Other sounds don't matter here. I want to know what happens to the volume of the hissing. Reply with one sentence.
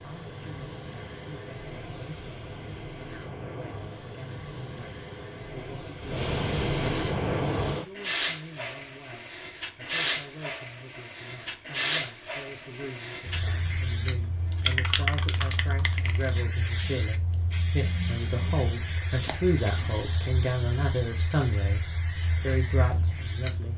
The loudness of the hissing goes up, then down.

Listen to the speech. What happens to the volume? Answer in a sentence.
The loudness of the speech goes up.